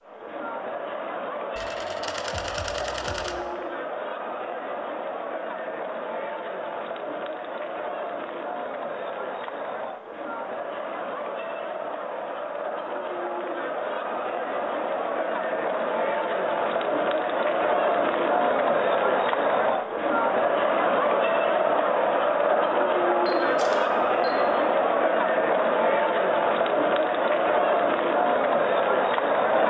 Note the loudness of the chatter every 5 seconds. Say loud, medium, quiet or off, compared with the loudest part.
medium, medium, medium, loud, loud, loud.